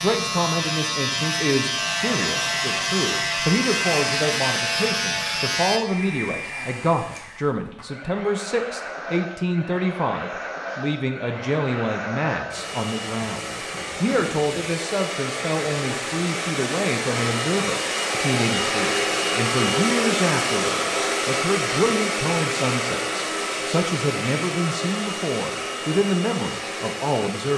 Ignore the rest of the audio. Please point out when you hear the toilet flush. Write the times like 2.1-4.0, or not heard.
not heard.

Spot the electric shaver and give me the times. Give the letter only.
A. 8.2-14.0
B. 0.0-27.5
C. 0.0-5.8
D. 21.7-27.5
C.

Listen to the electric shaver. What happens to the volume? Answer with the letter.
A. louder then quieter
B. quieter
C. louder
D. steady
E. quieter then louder
D.